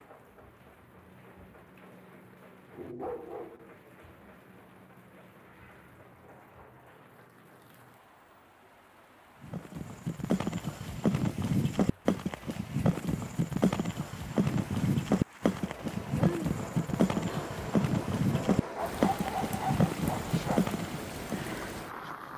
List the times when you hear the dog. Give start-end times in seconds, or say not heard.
2.7-3.8, 18.8-20.7.